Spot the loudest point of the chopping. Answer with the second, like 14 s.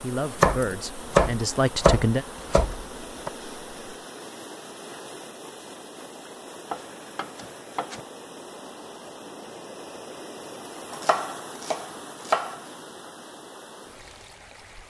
1 s.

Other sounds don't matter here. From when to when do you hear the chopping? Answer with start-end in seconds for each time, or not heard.
0.4-3.3, 6.7-8.0, 10.9-12.6.